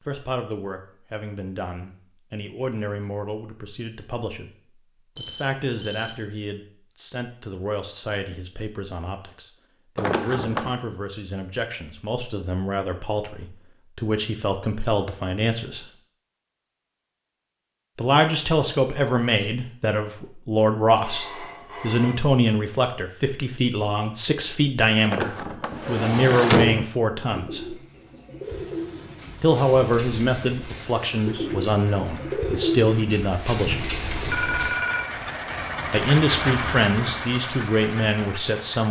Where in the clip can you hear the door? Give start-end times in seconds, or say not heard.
9.9-10.8, 25.0-26.9.